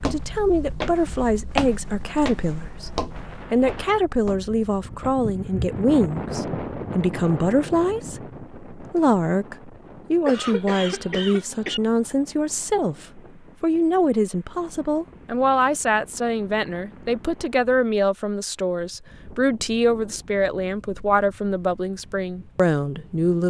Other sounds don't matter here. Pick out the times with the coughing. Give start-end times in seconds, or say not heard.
10.2-11.8.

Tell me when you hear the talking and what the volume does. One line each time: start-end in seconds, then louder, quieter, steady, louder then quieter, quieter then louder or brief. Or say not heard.
0.0-23.4 steady.